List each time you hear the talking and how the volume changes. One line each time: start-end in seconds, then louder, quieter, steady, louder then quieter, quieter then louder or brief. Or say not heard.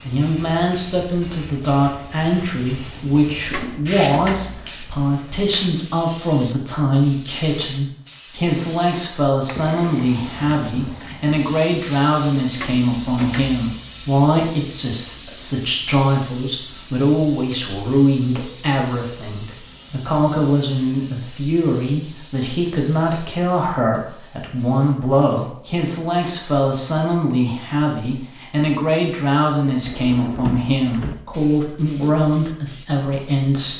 0.0-33.7 steady.